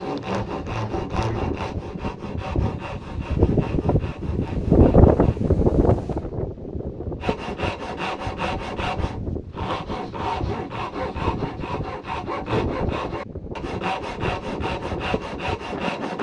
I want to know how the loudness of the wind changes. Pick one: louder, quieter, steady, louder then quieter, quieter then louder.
louder then quieter.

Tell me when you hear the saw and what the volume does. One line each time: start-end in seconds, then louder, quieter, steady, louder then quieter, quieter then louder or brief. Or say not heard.
0.0-5.5 quieter
7.2-16.1 steady.